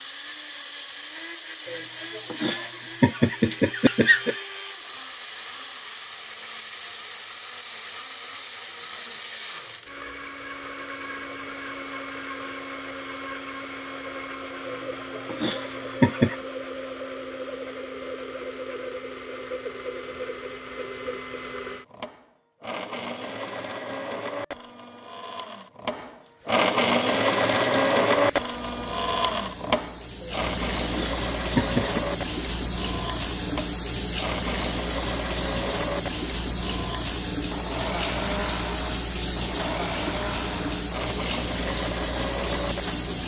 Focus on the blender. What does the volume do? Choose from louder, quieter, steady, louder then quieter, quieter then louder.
louder then quieter.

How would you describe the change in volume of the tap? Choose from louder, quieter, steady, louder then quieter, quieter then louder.
louder.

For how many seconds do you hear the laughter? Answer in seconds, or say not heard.
6 s.